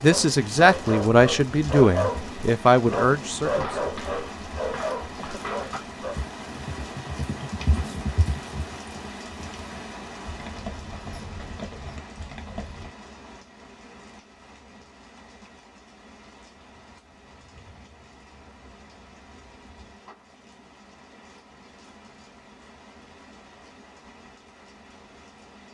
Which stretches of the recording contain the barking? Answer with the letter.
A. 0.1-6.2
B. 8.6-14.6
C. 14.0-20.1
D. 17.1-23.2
A.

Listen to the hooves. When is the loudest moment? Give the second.
8 s.